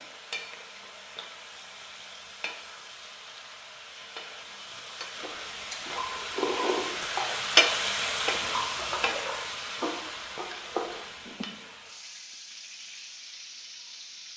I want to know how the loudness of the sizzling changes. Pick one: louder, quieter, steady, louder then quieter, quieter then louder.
louder then quieter.